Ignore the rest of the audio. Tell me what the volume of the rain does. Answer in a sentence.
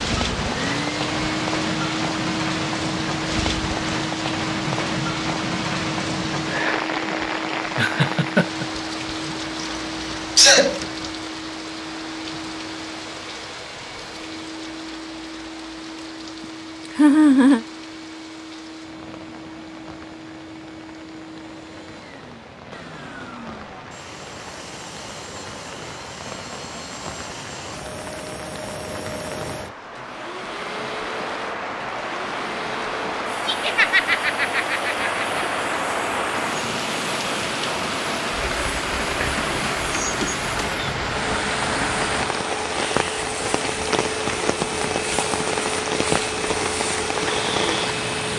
The loudness of the rain goes down, then up.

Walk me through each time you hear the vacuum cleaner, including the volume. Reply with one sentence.
You can hear the vacuum cleaner from 0.0 to 48.3 s, getting quieter then louder.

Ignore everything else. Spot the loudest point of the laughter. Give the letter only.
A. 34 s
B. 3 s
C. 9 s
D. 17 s
D.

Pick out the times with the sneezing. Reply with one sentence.
The sneezing can be heard from 9.6 to 10.8 s.